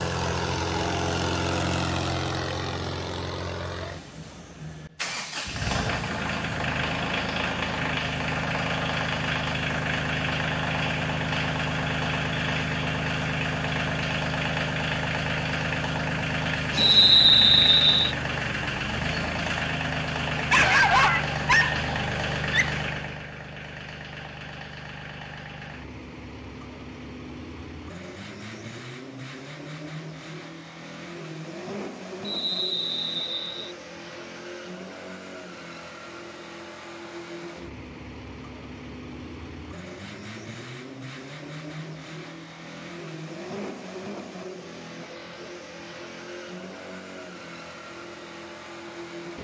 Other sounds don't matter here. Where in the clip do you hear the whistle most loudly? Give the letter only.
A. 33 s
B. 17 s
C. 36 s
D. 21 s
B.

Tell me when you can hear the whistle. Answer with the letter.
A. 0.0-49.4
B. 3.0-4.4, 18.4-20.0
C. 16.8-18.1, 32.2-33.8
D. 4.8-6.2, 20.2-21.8
C.